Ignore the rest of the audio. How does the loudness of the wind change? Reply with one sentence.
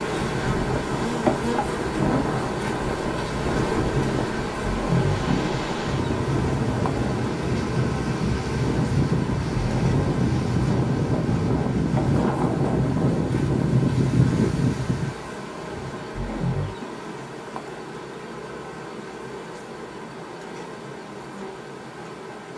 The volume of the wind goes up.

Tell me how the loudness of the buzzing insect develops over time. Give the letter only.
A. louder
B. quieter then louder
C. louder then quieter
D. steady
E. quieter
E.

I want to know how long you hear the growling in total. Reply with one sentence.
The growling can be heard for 3 seconds in total.